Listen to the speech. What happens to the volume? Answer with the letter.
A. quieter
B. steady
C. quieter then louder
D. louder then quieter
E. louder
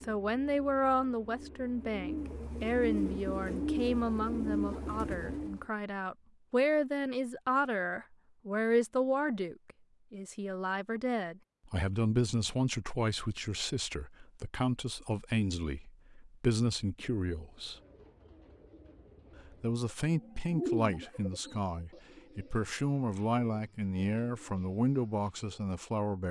B.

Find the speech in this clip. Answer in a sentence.
The speech can be heard from 0.0 to 17.8 s and from 19.6 to 26.2 s.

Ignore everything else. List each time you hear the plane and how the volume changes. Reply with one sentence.
The plane can't be heard in this clip.